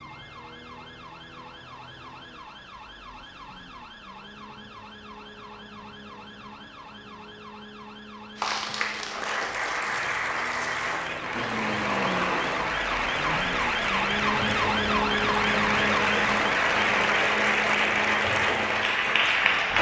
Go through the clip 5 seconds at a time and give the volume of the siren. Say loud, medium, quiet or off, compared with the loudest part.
quiet, quiet, loud, loud.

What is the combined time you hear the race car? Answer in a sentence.
You can hear the race car for 2 seconds altogether.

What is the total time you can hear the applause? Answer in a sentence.
The applause can be heard for 11 seconds in total.